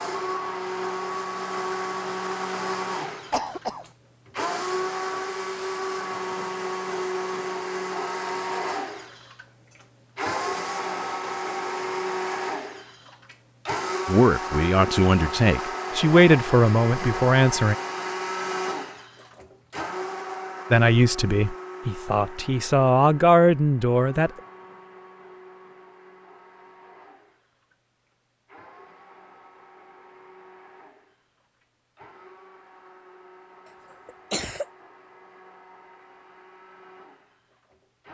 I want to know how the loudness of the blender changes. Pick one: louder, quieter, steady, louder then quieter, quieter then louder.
quieter.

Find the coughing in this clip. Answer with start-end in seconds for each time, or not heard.
3.3-3.9, 34.0-34.6.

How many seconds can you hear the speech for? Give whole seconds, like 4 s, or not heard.
7 s.